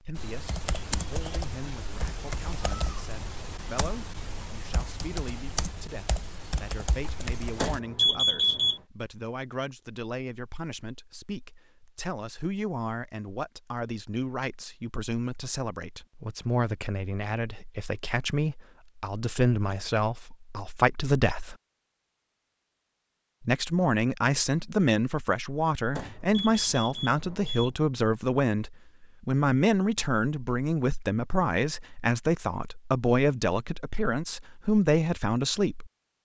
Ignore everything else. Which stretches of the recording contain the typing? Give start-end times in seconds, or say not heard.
0.1-7.8.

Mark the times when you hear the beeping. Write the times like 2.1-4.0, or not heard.
7.5-8.8, 25.9-27.7.